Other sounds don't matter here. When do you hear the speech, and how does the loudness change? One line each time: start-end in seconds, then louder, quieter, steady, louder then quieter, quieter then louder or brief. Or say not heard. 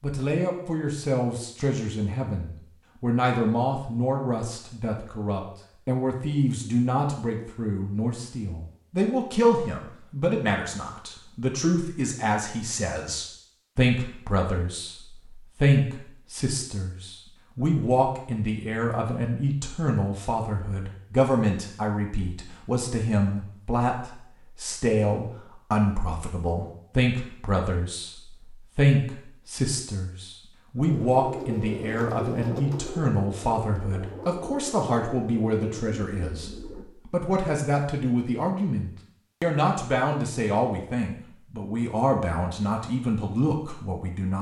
0.0-44.3 steady.